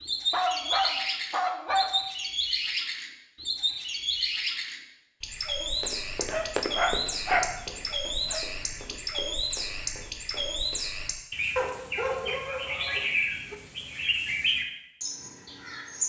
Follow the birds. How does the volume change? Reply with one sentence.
The loudness of the birds stays about the same.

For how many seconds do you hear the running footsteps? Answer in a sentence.
You can hear the running footsteps for 5 seconds altogether.